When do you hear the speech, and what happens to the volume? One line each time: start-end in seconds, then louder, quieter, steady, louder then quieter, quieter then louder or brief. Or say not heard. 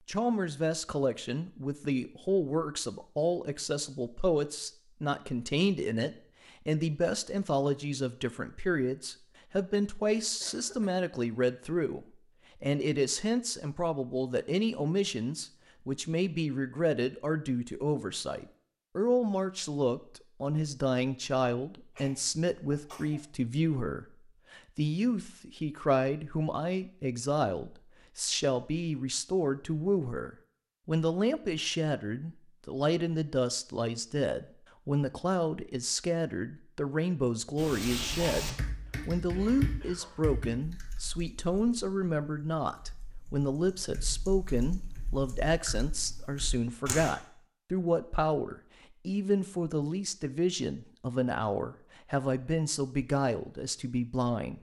0.1-54.5 steady.